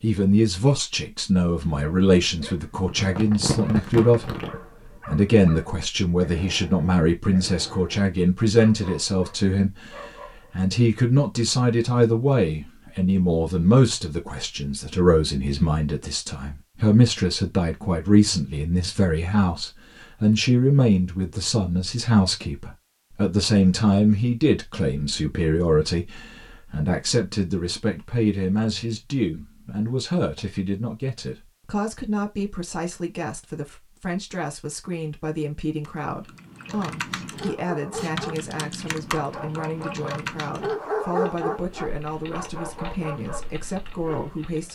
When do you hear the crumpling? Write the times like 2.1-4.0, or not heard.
2.7-4.6.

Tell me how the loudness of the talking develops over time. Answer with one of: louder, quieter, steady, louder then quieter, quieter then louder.
quieter.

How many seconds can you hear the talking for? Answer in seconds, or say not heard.
45 s.